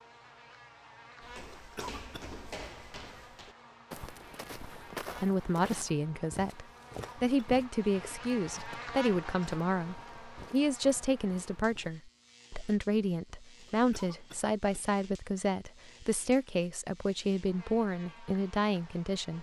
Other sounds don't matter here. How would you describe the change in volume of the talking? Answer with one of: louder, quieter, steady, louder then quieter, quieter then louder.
steady.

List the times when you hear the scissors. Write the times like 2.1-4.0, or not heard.
not heard.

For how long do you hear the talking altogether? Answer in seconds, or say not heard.
14 s.